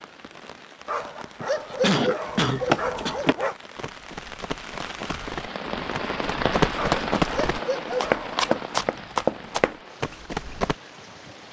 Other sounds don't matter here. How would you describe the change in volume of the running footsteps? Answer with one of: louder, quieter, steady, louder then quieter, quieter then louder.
quieter then louder.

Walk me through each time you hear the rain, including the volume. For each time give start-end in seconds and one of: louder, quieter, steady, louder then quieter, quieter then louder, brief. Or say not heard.
0.0-11.4 louder then quieter.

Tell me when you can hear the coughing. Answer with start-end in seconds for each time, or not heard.
1.4-3.1.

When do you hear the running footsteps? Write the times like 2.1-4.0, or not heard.
2.2-10.8.